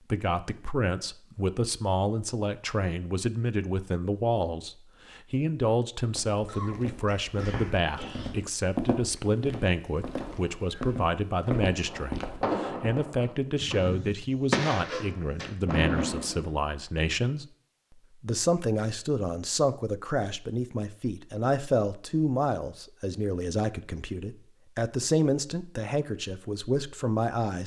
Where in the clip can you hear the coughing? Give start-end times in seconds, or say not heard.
6.3-8.3, 14.8-15.6.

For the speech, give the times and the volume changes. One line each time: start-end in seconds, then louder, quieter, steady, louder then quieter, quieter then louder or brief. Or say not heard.
0.1-17.4 steady
18.2-27.6 steady.